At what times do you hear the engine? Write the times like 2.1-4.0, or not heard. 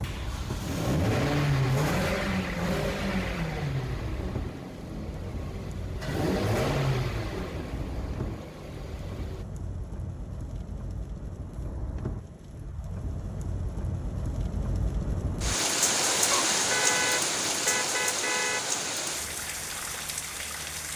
0.0-9.4.